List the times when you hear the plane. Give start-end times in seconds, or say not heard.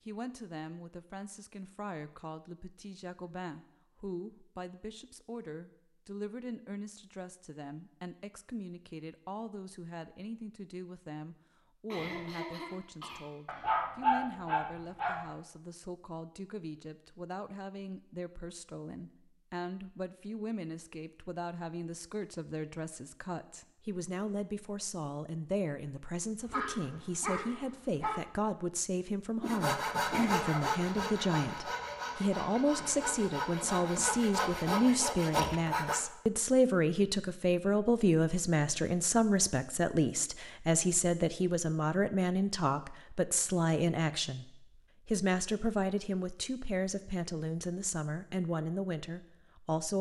not heard.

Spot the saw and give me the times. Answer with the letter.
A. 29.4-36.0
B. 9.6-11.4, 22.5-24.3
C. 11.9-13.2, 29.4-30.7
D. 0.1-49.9
A.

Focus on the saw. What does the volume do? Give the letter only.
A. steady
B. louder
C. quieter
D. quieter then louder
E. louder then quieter
D.